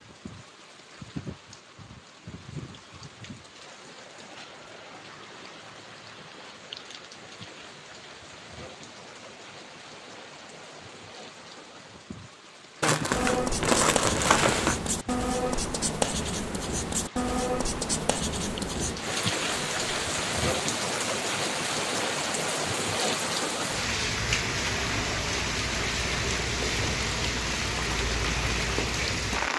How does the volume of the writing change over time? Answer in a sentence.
The loudness of the writing stays about the same.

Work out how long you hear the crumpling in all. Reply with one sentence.
You can hear the crumpling for 2 seconds altogether.